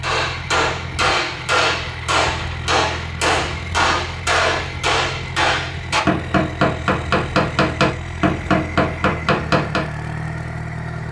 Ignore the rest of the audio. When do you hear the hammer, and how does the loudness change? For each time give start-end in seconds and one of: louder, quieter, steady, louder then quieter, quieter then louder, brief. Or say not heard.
0.0-9.8 steady.